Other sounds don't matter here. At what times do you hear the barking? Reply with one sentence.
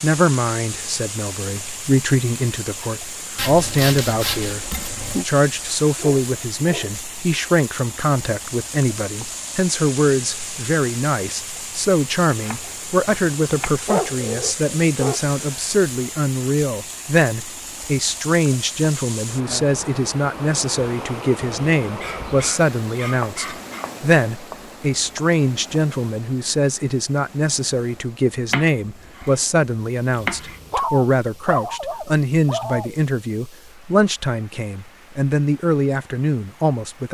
The barking can be heard from 6.0 to 7.0 s, from 13.8 to 15.3 s, from 22.0 to 23.9 s and from 30.1 to 33.0 s.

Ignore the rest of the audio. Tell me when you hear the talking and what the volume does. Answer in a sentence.
You can hear the talking from 0.0 to 37.0 s, at a steady volume.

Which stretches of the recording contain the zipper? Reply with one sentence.
You can't hear the zipper here.